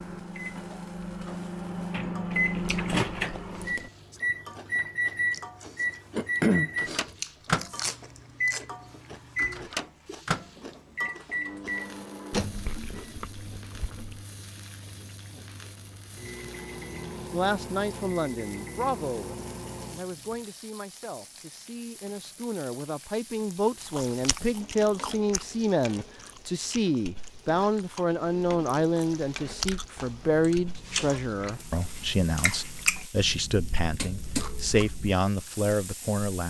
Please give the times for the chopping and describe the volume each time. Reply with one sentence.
You can't hear the chopping here.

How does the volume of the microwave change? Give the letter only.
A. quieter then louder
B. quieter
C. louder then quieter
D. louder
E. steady
B.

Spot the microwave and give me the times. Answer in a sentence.
You can hear the microwave from 0.0 to 20.4 s.